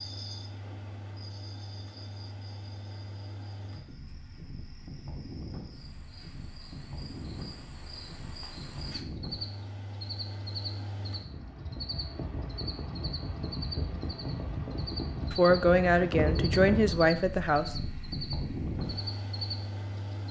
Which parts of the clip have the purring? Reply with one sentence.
The purring can't be heard in this clip.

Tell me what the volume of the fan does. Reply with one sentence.
The volume of the fan goes up.